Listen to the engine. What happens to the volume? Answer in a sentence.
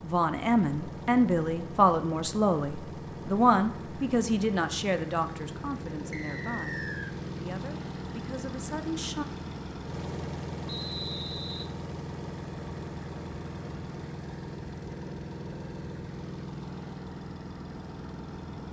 The volume of the engine stays about the same.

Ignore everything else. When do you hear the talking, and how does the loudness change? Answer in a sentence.
You can hear the talking from 0.0 to 9.2 s, getting quieter.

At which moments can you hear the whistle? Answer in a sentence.
You can hear the whistle from 6.1 to 7.2 s and from 10.7 to 11.7 s.